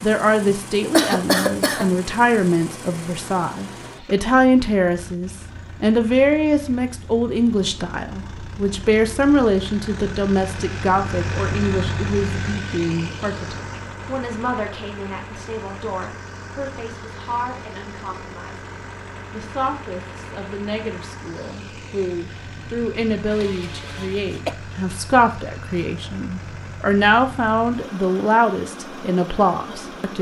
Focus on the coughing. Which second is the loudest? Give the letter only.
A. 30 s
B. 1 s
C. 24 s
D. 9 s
B.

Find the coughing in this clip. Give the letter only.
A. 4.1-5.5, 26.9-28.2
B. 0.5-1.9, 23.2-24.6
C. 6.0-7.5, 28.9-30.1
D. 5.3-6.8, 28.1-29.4
B.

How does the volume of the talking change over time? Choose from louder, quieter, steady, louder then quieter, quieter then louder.
quieter then louder.